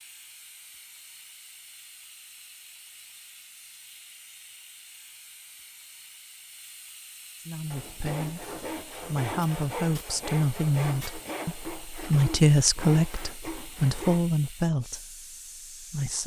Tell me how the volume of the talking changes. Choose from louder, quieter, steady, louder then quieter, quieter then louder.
louder then quieter.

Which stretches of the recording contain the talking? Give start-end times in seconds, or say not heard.
7.5-16.2.